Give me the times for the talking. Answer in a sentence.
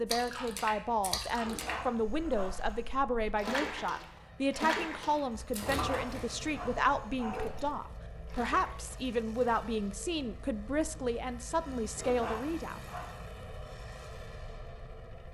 You can hear the talking from 0.0 to 12.8 s.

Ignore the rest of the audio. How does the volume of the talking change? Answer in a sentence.
The volume of the talking stays about the same.